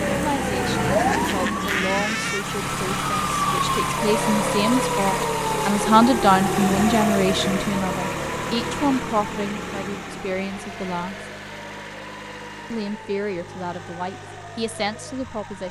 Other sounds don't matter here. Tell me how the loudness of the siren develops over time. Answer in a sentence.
The loudness of the siren goes down.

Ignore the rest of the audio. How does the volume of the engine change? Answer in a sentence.
The loudness of the engine goes down.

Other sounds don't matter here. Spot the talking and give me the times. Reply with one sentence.
You can hear the talking from 0.1 to 11.2 s and from 12.7 to 15.6 s.